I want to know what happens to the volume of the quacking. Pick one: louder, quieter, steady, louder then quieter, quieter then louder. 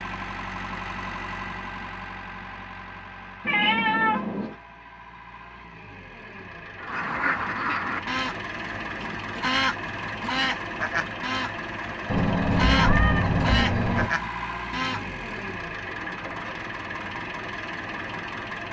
steady.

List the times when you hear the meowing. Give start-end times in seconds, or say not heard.
3.5-4.5, 12.1-14.1.